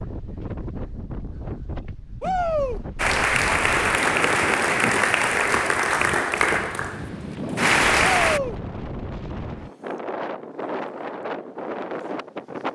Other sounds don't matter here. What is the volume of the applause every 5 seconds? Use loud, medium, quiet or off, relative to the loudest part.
loud, loud, off.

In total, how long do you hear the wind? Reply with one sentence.
The wind can be heard for 13 seconds in total.